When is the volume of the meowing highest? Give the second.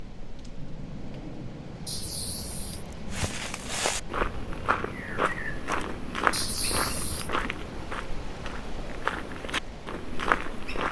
7 s.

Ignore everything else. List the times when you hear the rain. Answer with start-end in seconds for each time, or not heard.
0.0-10.8.